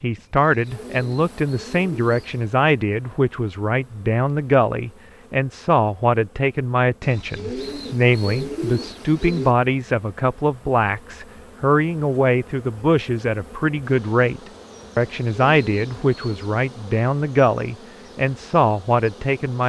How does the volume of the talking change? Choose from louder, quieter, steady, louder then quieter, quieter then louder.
steady.